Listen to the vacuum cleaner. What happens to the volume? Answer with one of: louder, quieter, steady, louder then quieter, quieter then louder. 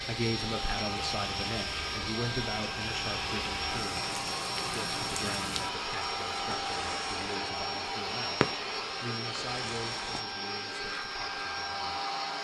steady.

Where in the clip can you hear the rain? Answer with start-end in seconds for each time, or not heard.
0.0-10.2.